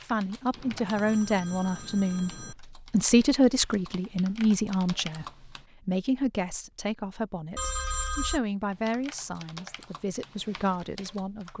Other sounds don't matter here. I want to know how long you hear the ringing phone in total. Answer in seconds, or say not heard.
3 s.